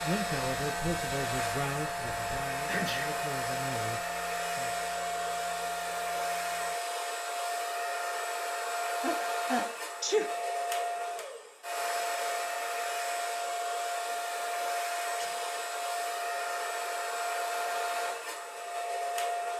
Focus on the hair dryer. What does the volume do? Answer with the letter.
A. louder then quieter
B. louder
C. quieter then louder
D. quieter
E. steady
E.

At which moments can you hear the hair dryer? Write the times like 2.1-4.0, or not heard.
0.0-19.5.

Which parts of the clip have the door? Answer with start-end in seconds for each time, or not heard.
not heard.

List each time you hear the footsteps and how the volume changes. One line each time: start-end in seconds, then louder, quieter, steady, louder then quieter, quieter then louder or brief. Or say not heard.
not heard.